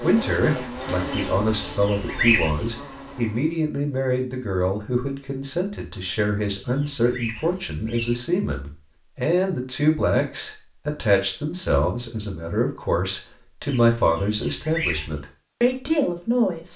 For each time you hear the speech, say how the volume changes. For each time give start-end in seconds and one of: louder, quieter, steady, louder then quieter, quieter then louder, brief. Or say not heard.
0.0-16.7 steady.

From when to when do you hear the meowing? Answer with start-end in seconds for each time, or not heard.
not heard.